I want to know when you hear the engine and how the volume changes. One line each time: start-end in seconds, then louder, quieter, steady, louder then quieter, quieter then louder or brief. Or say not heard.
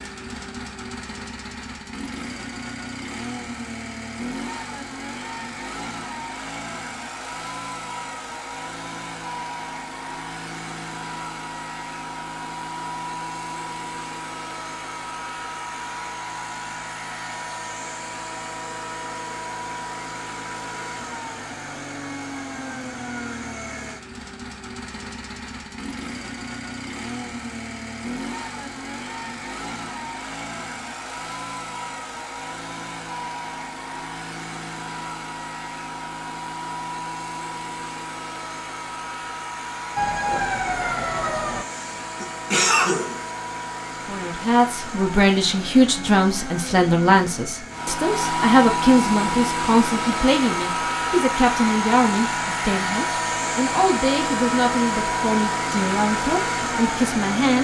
0.0-57.5 louder.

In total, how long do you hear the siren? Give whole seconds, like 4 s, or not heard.
2 s.